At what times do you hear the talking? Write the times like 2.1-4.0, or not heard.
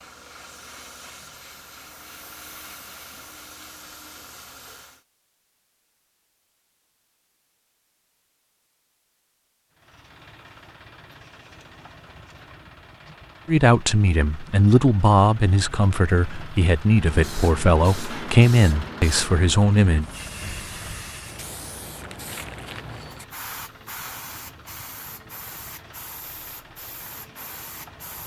13.4-20.1.